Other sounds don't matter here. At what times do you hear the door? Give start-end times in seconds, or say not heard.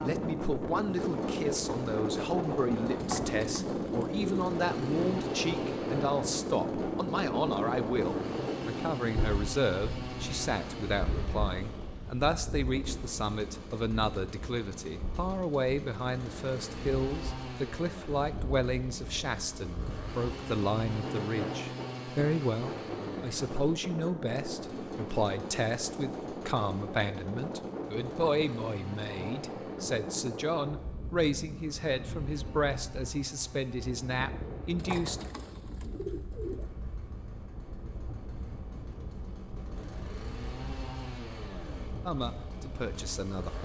not heard.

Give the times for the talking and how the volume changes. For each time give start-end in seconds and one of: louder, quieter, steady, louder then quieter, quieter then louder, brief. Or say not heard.
0.0-35.2 steady
42.0-43.6 brief.